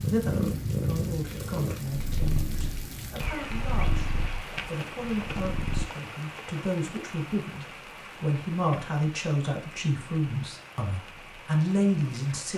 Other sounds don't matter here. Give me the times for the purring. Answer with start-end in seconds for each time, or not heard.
0.0-5.8.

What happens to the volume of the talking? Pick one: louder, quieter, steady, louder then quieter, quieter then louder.
louder.